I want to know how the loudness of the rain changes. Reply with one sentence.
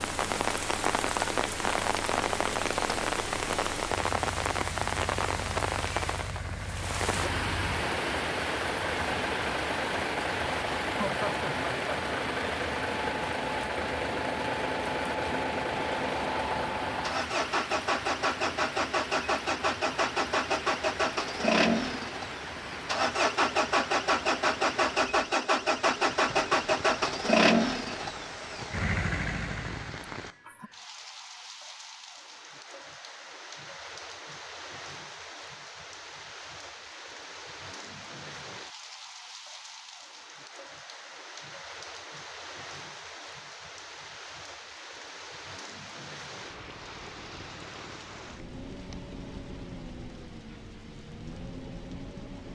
The loudness of the rain goes down.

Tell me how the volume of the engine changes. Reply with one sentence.
The volume of the engine goes up.